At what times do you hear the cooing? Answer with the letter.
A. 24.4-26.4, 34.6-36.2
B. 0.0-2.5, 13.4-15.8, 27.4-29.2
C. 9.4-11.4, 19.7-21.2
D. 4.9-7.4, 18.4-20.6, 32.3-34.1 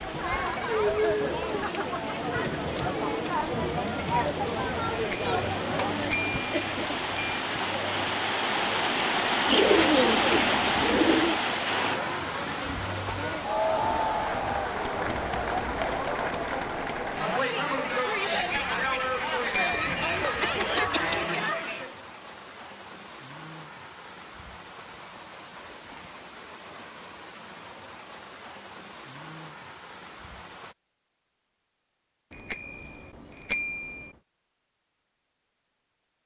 C.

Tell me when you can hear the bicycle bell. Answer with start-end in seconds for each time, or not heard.
4.9-7.4, 18.4-20.6, 32.3-34.1.